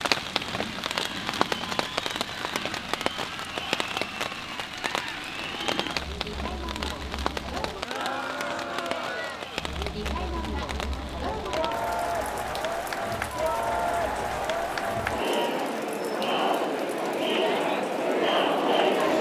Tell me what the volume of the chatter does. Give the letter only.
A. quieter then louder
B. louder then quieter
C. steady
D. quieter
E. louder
E.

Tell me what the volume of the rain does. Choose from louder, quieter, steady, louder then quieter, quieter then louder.
quieter.